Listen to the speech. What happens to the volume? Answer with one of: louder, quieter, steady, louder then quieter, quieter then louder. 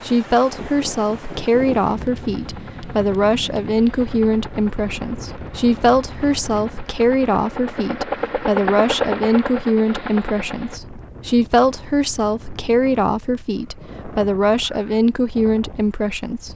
steady.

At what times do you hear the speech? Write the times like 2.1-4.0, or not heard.
0.0-16.5.